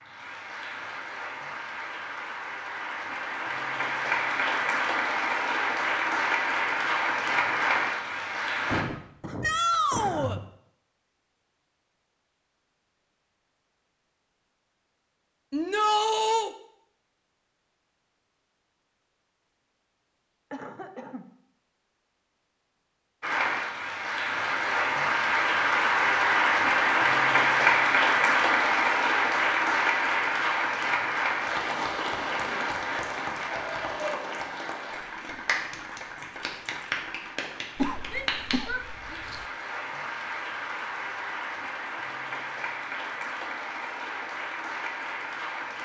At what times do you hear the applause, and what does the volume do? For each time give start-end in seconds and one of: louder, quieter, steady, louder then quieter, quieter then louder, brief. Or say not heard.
0.0-8.8 louder
23.2-45.7 quieter.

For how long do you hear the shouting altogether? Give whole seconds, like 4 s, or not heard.
3 s.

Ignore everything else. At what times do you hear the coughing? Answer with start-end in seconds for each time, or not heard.
8.7-10.4, 20.5-21.2, 37.8-39.5.